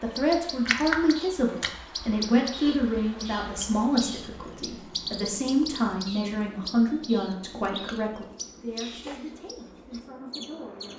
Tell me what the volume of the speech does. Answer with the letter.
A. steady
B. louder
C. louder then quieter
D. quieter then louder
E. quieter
E.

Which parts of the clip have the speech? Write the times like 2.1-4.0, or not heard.
0.0-10.9.